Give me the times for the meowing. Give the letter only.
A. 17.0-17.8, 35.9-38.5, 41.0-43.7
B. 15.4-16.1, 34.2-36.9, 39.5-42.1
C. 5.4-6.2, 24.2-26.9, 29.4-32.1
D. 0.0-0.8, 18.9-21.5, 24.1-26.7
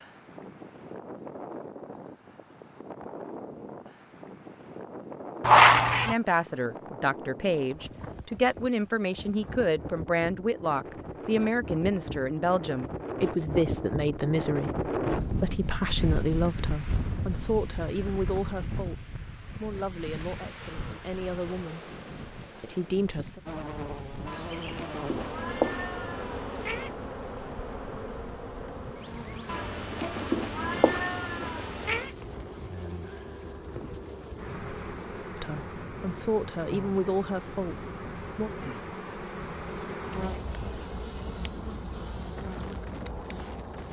C.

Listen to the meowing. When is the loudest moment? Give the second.
6 s.